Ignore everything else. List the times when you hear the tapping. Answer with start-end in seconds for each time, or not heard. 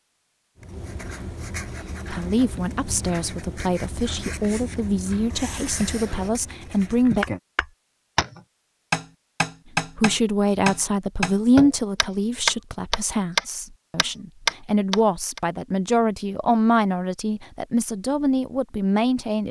7.2-15.4.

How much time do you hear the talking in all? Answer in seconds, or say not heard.
15 s.